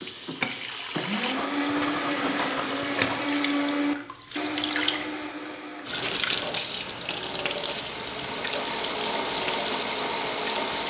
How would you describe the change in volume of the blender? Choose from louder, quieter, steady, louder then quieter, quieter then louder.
quieter then louder.